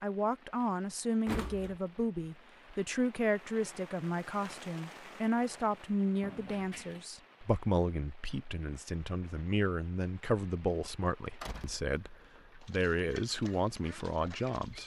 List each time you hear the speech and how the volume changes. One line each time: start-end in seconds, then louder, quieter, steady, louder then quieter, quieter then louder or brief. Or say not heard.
0.0-14.8 steady.